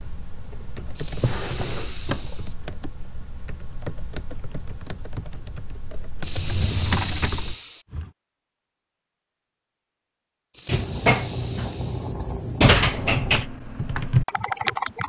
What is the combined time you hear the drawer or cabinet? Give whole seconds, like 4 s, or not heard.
6 s.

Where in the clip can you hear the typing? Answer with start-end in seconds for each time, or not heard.
0.0-7.5, 12.7-15.0.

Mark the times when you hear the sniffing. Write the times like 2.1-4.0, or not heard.
0.9-2.5, 6.2-7.8, 10.5-12.2.